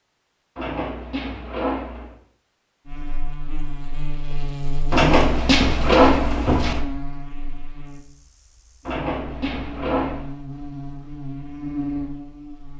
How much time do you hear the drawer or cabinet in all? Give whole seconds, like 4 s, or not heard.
5 s.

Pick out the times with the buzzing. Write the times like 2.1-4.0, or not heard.
2.9-12.7.